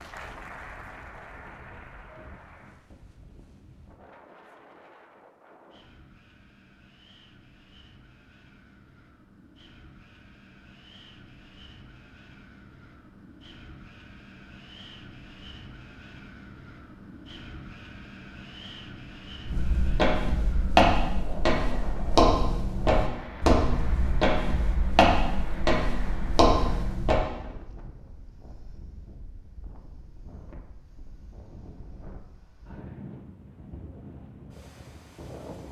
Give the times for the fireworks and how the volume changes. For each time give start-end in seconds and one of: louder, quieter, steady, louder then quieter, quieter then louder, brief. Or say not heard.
not heard.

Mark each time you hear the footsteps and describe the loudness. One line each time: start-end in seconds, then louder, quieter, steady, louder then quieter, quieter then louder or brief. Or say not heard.
19.4-27.2 steady.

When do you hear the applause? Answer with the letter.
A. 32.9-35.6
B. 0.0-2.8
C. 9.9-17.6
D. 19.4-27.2
B.